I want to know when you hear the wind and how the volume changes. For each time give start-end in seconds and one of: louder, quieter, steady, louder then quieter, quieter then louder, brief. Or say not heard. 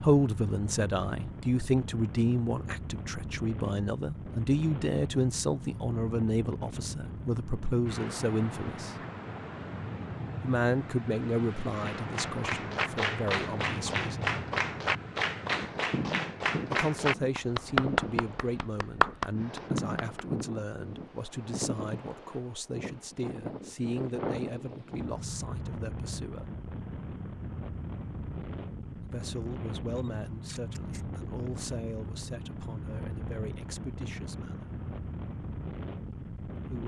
0.0-36.8 steady.